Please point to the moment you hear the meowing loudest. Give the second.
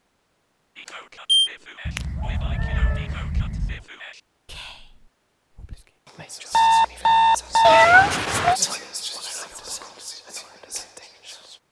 8 s.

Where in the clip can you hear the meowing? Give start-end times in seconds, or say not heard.
1.9-3.8, 7.6-8.6.